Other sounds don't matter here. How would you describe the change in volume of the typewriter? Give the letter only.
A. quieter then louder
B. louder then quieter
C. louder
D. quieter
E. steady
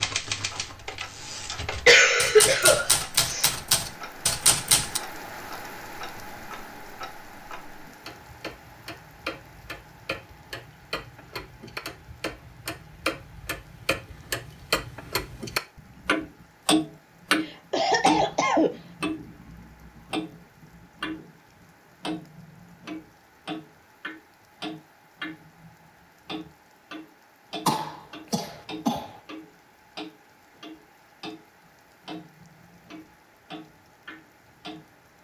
C.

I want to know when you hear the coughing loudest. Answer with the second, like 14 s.
2 s.